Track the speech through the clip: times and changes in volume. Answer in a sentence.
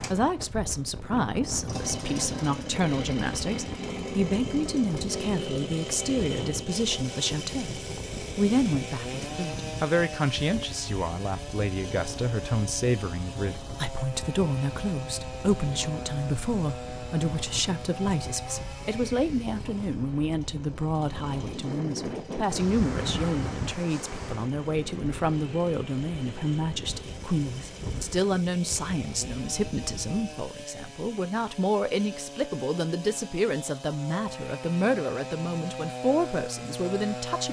The speech can be heard from 0.0 to 37.4 s, at a steady volume.